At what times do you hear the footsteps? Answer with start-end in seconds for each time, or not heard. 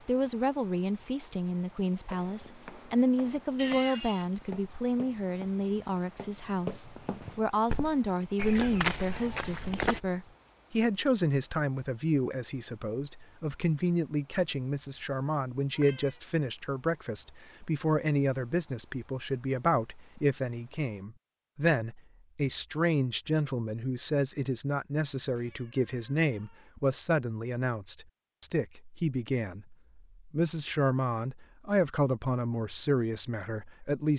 2.1-10.0.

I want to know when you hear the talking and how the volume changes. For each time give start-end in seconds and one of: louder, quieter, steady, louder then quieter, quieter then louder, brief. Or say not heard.
0.1-34.1 steady.